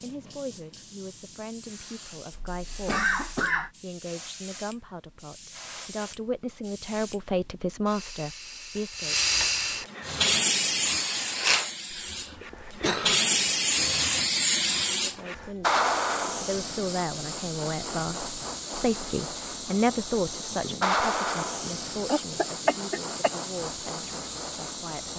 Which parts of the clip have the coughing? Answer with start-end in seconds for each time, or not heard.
2.3-3.7, 11.9-13.2, 22.1-23.3.